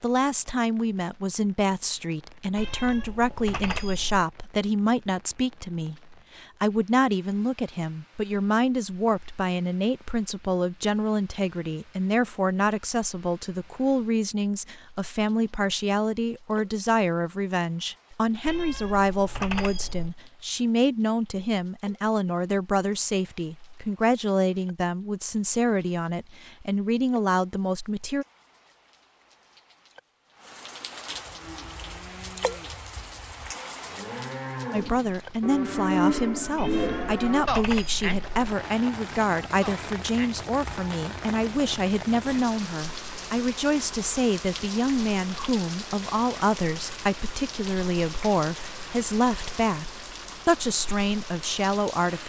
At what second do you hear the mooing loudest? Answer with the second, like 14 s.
36 s.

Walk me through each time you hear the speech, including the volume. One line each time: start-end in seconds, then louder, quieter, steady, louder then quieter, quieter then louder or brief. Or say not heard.
0.0-28.2 steady
34.7-52.2 steady.